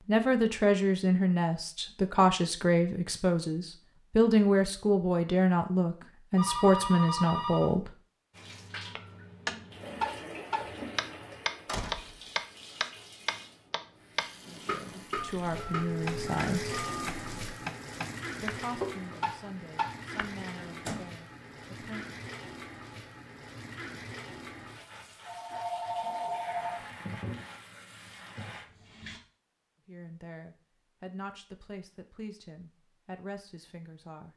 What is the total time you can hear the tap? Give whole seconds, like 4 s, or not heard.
21 s.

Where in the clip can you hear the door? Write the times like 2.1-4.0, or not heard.
11.7-12.2, 20.1-21.1.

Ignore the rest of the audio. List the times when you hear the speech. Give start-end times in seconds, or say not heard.
0.1-8.0, 14.4-16.8, 18.4-22.2, 29.9-34.3.